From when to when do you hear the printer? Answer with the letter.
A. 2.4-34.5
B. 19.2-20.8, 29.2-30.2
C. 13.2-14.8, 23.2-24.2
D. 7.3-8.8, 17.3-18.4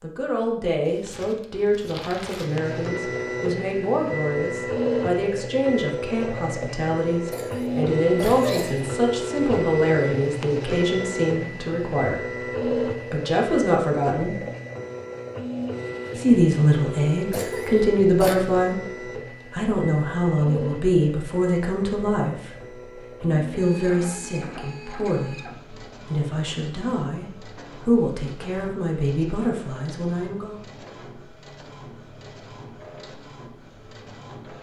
A.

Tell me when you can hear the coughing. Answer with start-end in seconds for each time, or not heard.
7.3-8.8, 17.3-18.4.